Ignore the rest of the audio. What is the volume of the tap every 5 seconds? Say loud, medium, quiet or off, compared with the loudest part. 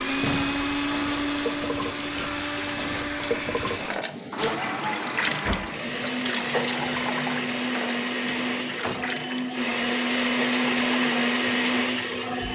loud, loud, medium.